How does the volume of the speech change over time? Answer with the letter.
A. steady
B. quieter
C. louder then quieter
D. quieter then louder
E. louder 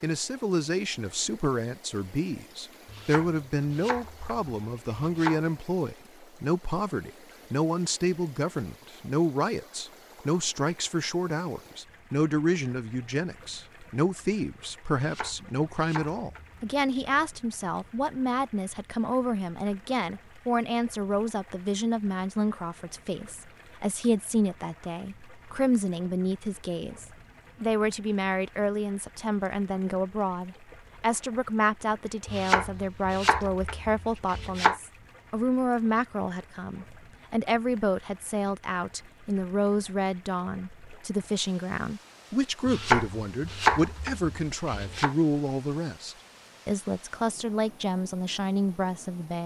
A.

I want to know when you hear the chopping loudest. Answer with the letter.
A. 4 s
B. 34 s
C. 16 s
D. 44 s
D.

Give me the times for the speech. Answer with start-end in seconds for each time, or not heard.
0.0-49.4.